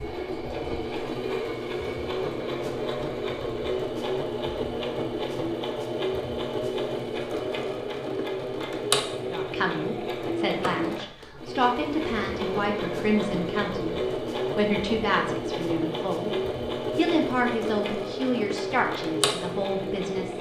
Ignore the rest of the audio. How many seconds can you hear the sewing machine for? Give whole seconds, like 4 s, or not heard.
20 s.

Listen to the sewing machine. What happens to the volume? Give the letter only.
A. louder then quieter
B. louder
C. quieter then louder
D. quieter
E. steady
E.